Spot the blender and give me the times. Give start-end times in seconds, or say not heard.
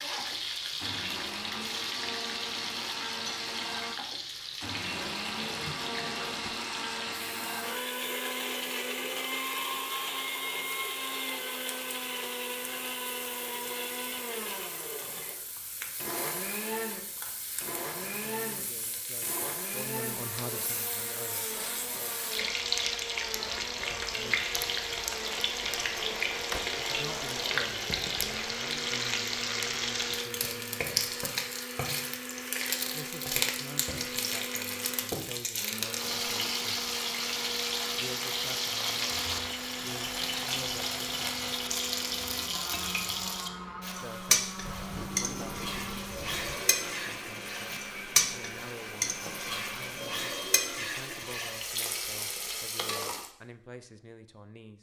0.0-50.6.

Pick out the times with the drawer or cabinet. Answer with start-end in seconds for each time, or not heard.
4.8-6.5, 25.8-26.7, 44.5-46.5.